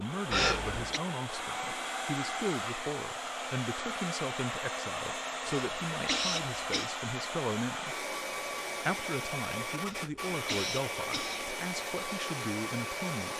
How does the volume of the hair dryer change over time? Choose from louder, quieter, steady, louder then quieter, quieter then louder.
steady.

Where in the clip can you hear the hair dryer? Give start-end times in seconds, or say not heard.
0.0-13.3.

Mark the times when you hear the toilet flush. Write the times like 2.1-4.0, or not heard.
not heard.